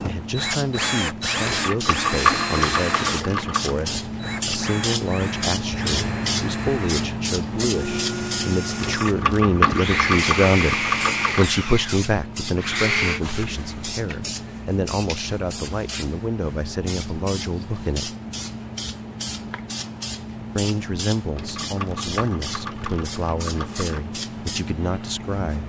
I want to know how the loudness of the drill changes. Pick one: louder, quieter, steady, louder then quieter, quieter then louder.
quieter then louder.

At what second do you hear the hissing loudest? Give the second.
6 s.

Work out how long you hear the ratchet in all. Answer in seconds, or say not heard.
8 s.